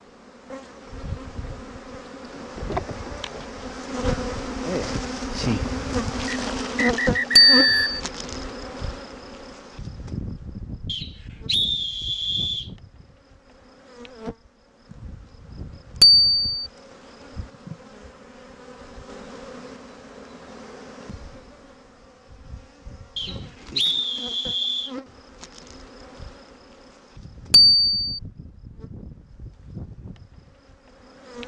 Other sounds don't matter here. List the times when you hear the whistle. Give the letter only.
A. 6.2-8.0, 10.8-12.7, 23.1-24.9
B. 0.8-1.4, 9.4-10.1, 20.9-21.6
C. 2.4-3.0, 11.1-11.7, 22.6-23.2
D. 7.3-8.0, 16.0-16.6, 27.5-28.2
A.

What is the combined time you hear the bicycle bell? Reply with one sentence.
The bicycle bell can be heard for 2 seconds in total.